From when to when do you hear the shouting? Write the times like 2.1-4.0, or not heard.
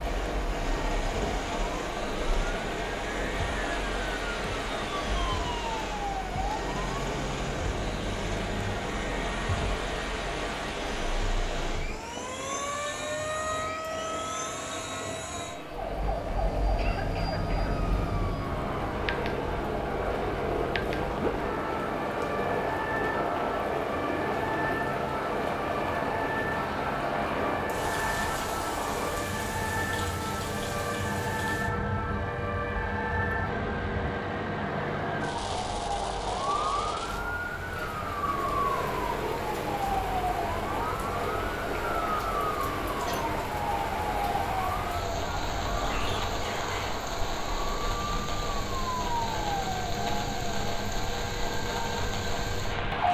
45.9-46.9.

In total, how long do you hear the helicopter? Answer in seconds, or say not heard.
53 s.